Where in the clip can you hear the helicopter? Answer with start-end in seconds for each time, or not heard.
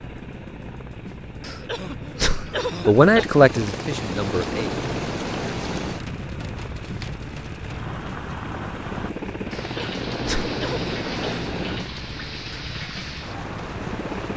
0.0-14.3.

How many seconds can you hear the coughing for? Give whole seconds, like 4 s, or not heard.
4 s.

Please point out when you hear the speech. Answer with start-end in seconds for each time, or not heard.
2.9-4.7.